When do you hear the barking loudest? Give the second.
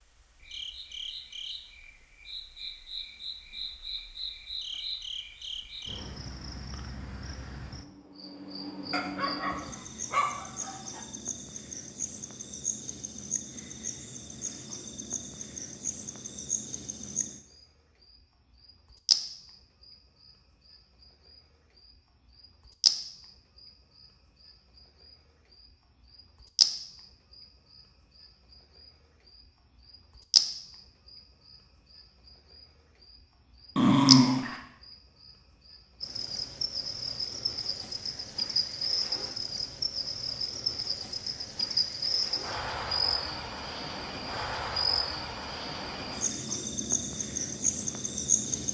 34 s.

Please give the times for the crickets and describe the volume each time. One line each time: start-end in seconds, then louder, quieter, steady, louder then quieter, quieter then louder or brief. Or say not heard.
0.0-48.6 louder.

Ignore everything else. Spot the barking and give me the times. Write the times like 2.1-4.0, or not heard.
8.9-11.0, 33.8-34.6.